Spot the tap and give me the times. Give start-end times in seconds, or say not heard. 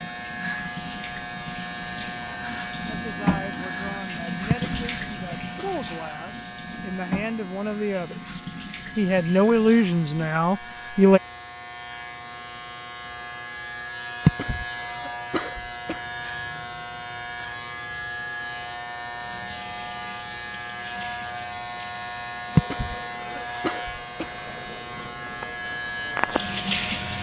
0.0-10.3, 19.1-27.1.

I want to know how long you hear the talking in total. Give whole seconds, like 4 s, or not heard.
8 s.